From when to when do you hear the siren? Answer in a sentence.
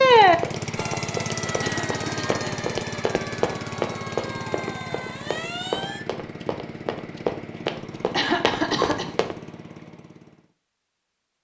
You can hear the siren from 0.0 to 6.0 s.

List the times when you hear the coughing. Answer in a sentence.
You can hear the coughing from 1.6 to 2.6 s and from 8.1 to 9.1 s.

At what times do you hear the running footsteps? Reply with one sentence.
The running footsteps can be heard from 0.3 to 9.3 s.